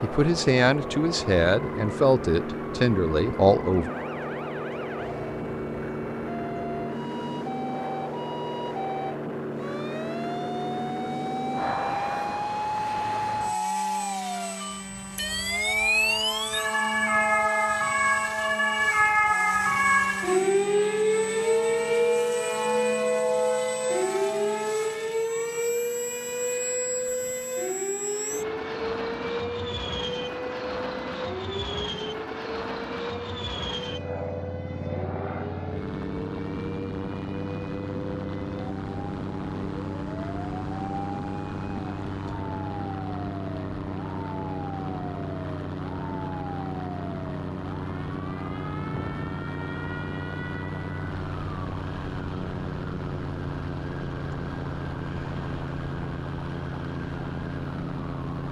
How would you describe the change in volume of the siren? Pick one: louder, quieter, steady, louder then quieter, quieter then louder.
louder then quieter.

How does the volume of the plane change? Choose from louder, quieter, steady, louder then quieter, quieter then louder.
steady.